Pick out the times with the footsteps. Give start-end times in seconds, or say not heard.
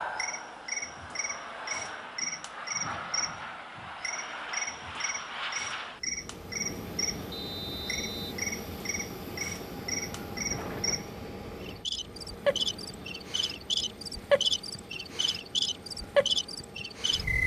not heard.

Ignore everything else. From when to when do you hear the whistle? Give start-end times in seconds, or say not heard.
7.3-8.3.